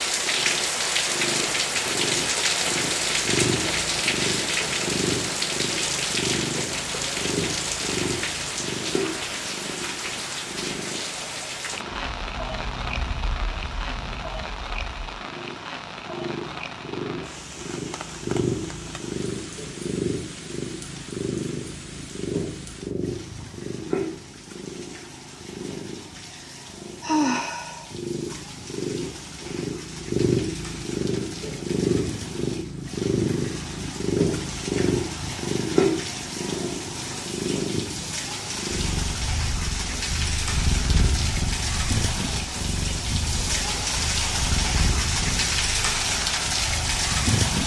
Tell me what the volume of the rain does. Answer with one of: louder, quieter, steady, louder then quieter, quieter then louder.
quieter then louder.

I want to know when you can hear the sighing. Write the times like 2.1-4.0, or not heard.
26.3-27.9.